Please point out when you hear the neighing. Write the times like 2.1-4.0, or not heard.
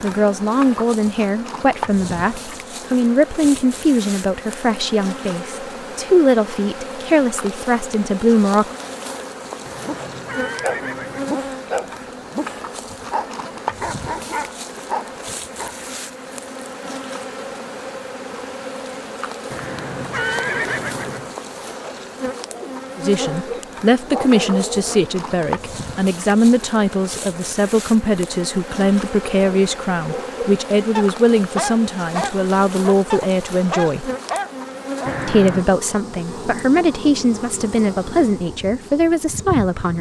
9.7-11.3, 19.5-21.3, 35.0-35.7.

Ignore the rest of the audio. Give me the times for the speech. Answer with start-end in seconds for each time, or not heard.
0.0-8.8, 22.9-34.1, 35.2-39.9.